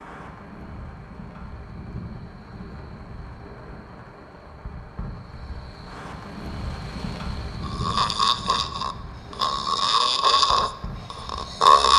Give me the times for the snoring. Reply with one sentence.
The snoring can be heard from 7.6 to 11.9 s.